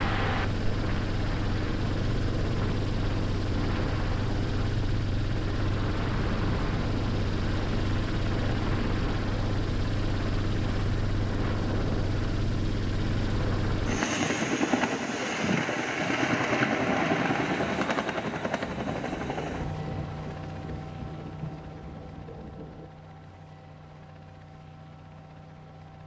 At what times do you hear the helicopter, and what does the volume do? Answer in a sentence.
The helicopter can be heard from 0.0 to 26.0 s, getting quieter.